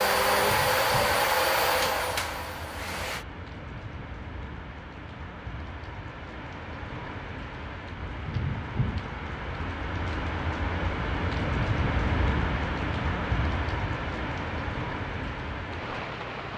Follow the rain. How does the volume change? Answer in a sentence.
The loudness of the rain goes up.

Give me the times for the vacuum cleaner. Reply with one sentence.
The vacuum cleaner can be heard from 0.0 to 3.2 s.